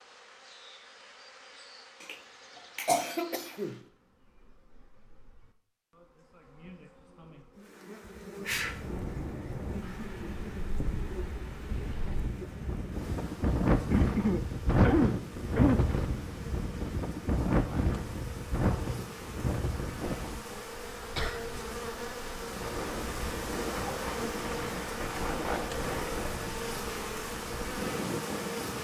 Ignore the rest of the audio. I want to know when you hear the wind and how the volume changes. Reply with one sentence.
You can hear the wind from 8.4 to 28.7 s, getting louder then quieter.